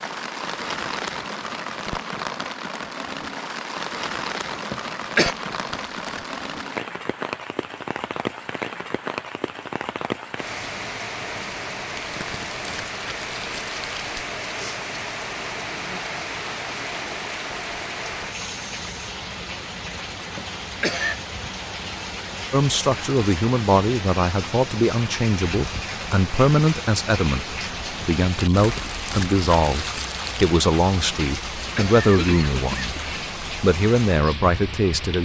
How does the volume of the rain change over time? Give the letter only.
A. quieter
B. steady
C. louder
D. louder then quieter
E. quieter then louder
B.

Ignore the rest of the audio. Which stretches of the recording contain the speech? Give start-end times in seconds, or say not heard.
22.5-35.1.